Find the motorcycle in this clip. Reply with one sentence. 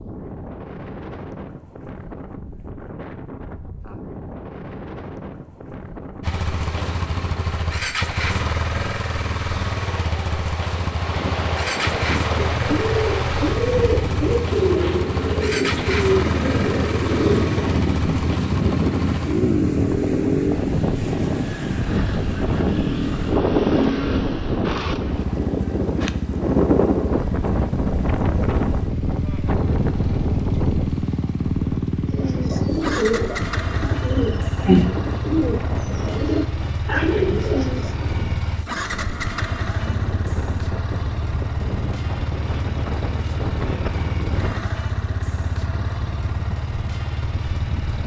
You can hear the motorcycle from 6.2 to 48.0 s.